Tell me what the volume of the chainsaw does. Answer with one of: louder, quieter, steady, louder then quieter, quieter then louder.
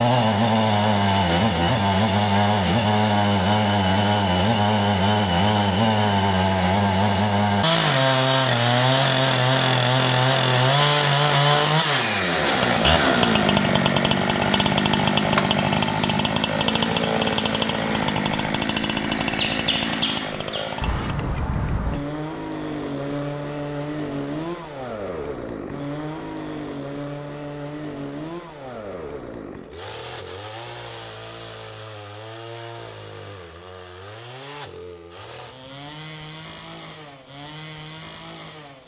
quieter.